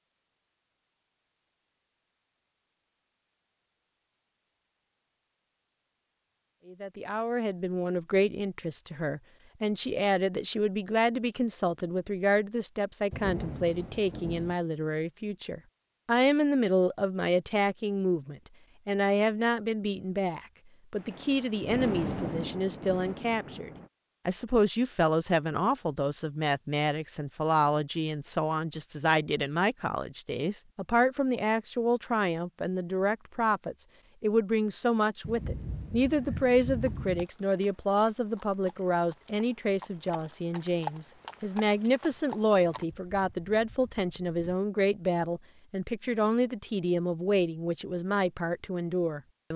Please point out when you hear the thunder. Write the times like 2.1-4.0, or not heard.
13.1-14.6, 20.9-23.9, 35.2-37.2.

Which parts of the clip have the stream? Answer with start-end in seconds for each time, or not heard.
not heard.